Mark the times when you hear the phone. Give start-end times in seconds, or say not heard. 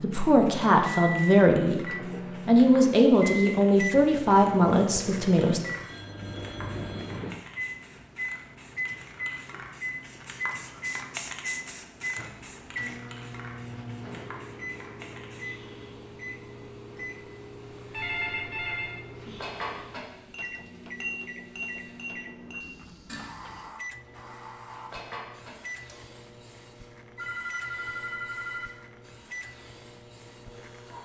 5.8-7.2, 17.9-19.0, 27.1-28.7.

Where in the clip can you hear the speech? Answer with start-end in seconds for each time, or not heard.
0.0-5.6.